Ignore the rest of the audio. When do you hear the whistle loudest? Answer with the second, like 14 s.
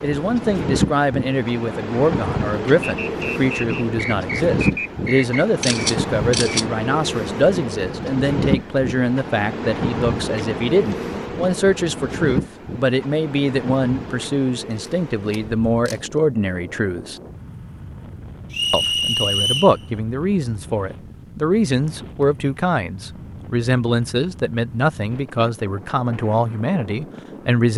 19 s.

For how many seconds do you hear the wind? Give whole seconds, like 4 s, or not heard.
28 s.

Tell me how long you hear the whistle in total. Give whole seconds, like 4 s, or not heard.
4 s.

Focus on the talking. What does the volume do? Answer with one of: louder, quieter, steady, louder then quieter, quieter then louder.
steady.